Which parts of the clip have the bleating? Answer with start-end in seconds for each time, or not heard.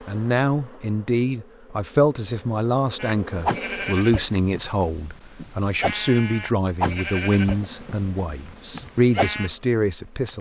3.0-9.5.